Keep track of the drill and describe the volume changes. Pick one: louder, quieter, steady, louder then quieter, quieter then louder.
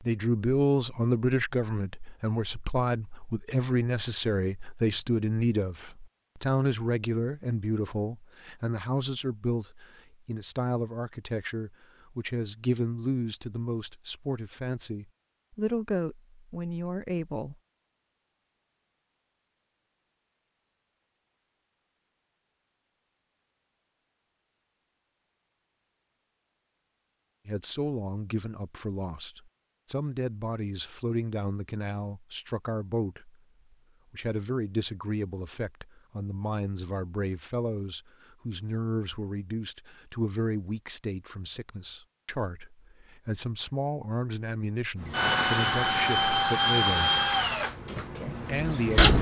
quieter.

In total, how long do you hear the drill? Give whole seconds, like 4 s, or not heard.
4 s.